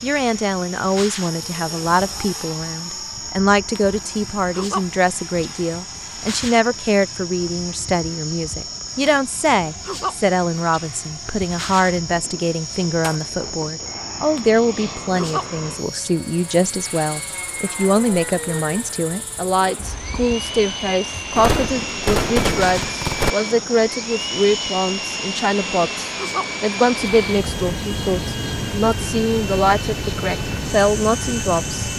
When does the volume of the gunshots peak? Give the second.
22 s.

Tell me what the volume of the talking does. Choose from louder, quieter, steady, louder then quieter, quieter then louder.
steady.